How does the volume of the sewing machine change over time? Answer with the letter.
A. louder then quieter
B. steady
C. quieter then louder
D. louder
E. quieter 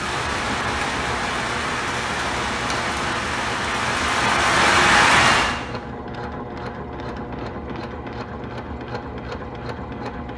B.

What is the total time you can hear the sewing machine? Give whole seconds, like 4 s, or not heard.
10 s.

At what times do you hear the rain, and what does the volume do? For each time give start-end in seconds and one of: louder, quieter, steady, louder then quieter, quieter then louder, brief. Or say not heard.
0.0-5.5 louder.